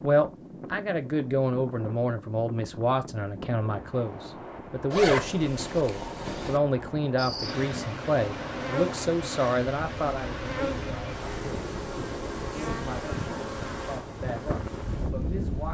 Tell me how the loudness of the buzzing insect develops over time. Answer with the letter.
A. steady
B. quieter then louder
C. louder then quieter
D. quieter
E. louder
D.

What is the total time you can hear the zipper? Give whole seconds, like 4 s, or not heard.
2 s.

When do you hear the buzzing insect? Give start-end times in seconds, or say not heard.
7.2-15.7.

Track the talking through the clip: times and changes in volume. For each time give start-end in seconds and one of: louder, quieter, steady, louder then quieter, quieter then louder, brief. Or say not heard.
0.0-15.7 quieter.